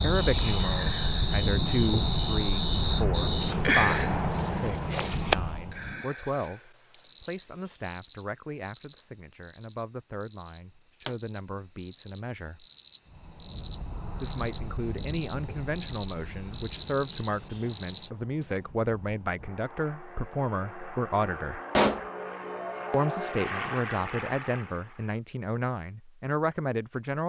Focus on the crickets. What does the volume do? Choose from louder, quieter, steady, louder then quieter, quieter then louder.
quieter then louder.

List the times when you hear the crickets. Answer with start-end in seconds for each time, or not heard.
0.0-18.1.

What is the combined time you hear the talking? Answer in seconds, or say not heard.
24 s.